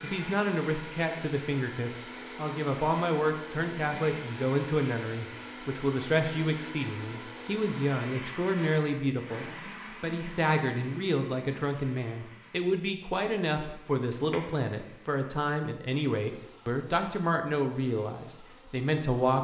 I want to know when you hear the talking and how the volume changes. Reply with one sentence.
You can hear the talking from 0.0 to 19.3 s, at a steady volume.